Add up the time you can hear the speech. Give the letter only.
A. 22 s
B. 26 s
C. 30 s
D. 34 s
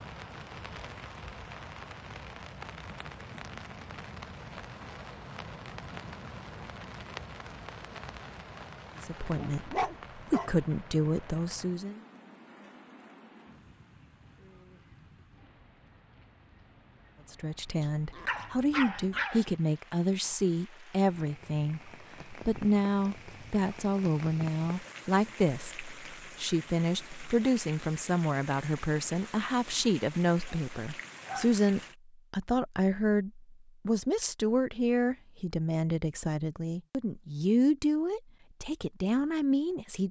B.